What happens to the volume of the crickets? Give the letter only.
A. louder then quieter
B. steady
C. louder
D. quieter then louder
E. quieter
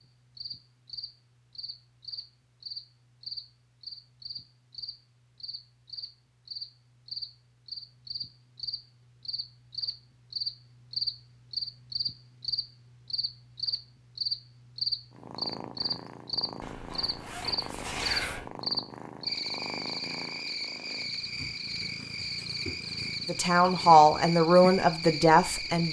C.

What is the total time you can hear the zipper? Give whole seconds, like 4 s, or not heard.
2 s.